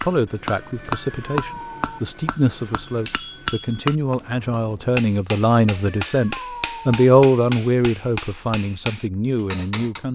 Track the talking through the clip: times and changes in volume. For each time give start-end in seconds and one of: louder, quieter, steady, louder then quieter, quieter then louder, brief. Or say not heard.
0.0-10.0 louder then quieter.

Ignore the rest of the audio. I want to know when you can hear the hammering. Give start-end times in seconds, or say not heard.
0.0-10.0.